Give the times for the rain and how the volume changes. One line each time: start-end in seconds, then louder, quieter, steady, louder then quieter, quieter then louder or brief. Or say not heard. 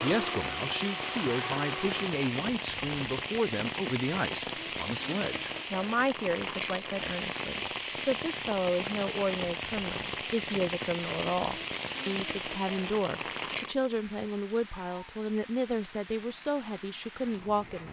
0.0-17.8 quieter.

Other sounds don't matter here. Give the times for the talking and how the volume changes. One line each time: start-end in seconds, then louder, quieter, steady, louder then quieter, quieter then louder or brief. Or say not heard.
0.0-17.8 steady.